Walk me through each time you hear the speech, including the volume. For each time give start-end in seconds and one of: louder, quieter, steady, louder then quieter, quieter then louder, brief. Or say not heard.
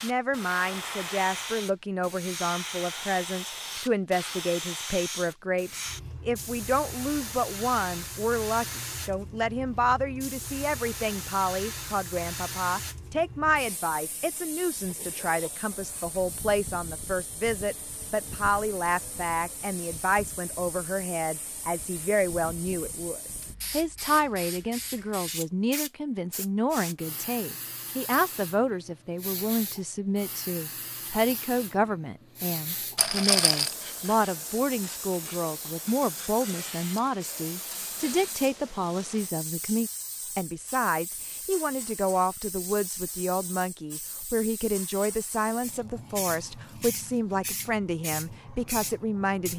0.0-49.5 steady.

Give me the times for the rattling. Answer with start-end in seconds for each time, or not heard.
33.0-33.8.